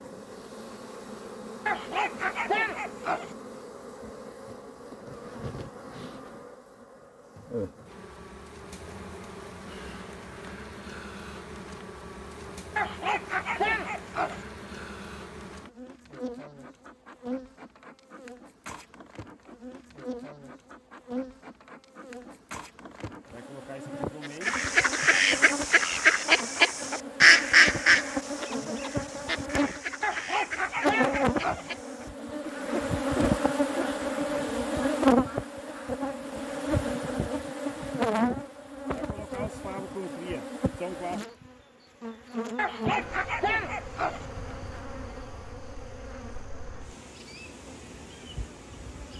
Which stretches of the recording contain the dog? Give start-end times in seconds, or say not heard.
1.6-3.4, 12.8-14.4, 30.0-31.7, 42.5-44.2.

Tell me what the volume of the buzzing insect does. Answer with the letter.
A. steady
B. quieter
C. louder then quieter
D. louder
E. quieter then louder
C.